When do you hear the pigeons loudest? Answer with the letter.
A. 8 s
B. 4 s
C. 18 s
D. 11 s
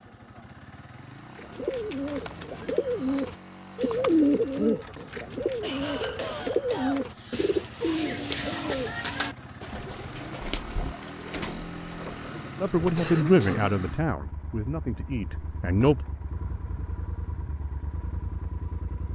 B.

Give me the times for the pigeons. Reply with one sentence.
You can hear the pigeons from 1.4 to 13.0 s.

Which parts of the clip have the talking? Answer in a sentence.
The talking can be heard from 12.6 to 16.1 s.